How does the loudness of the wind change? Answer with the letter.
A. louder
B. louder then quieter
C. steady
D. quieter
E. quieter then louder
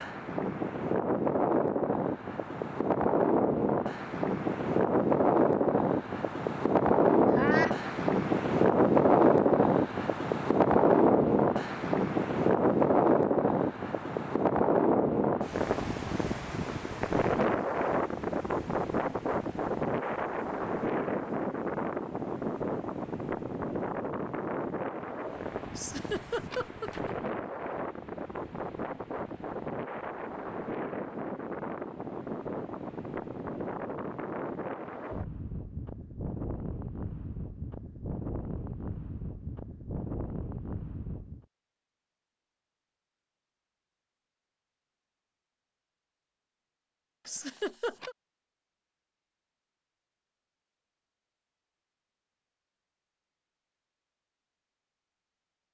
D.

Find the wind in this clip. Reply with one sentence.
You can hear the wind from 0.0 to 41.5 s.